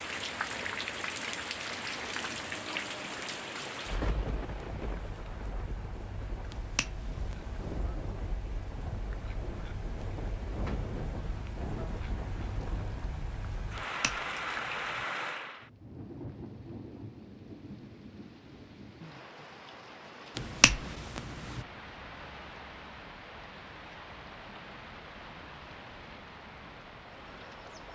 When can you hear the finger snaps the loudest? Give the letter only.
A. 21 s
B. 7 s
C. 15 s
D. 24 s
A.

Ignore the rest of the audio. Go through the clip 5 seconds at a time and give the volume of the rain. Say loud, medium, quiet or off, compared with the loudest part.
loud, medium, loud, medium, medium, medium.